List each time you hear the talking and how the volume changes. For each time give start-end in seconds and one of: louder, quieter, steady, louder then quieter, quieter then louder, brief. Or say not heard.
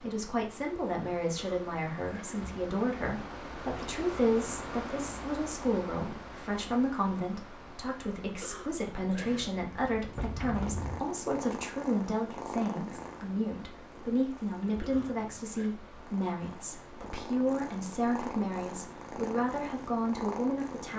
0.0-20.9 steady.